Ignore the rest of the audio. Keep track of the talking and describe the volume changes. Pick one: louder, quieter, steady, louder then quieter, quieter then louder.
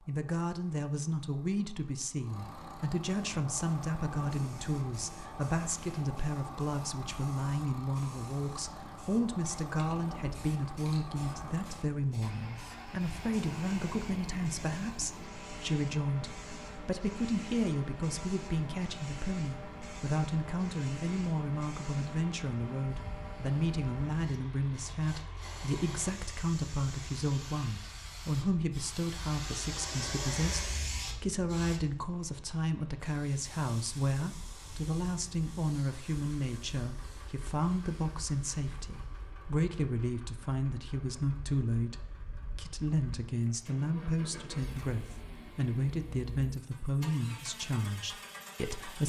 steady.